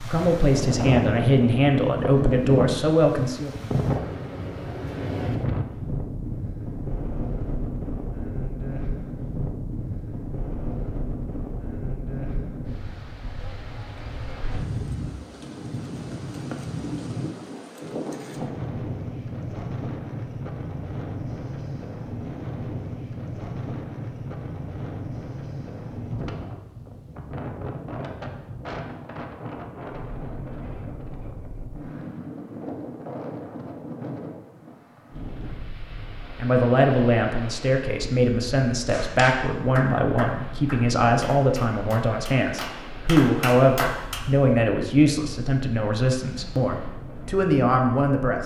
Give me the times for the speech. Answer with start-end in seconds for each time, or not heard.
0.0-3.5, 36.4-48.4.